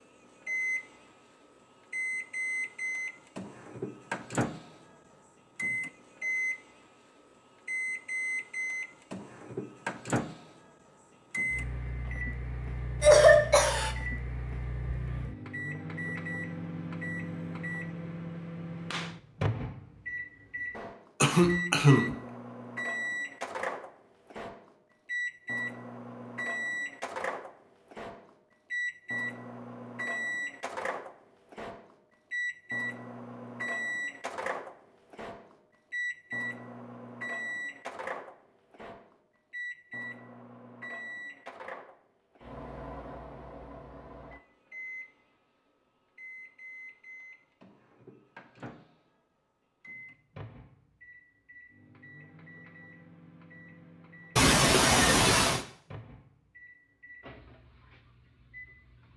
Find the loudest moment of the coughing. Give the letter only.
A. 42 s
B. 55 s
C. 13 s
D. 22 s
C.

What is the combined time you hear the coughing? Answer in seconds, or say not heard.
3 s.